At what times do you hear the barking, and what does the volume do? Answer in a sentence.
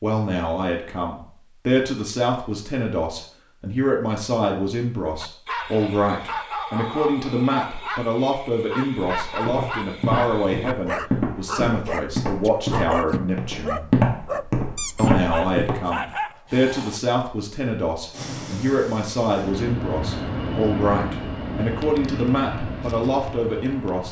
The barking can be heard from 5.2 to 17.0 s, at a steady volume.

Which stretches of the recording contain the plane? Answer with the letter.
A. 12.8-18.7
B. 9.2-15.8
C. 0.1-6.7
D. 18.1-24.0
D.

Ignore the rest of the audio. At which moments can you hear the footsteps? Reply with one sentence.
You can hear the footsteps from 9.2 to 15.8 s.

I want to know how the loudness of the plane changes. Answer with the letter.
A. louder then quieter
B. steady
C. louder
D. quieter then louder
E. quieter
A.